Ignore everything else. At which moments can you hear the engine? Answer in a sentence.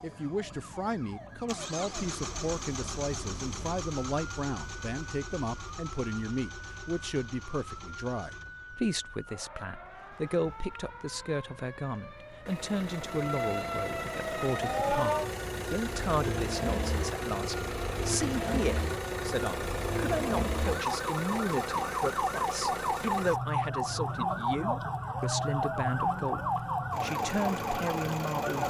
You can hear the engine from 0.0 to 28.6 s.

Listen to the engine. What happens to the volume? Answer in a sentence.
The volume of the engine goes down, then up.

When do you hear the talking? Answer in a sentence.
You can hear the talking from 0.0 to 28.6 s.